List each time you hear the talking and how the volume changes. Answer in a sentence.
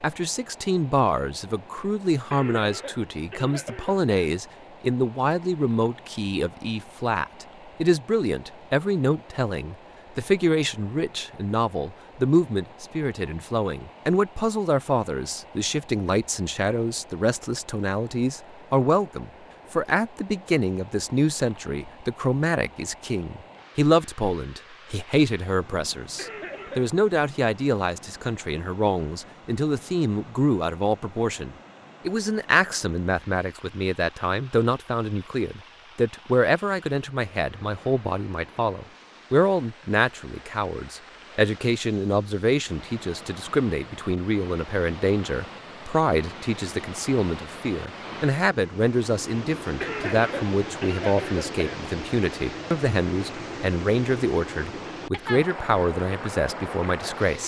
The talking can be heard from 0.0 to 57.4 s, at a steady volume.